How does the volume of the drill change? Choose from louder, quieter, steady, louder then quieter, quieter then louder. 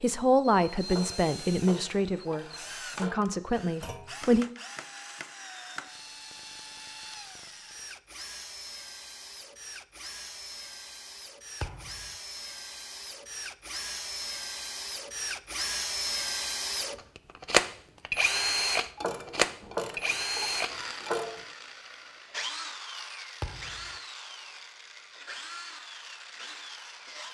louder then quieter.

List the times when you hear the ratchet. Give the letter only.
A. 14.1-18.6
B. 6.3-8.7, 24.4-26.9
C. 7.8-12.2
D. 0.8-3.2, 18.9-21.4
D.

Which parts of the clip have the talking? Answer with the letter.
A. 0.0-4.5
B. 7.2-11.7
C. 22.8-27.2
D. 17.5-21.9
A.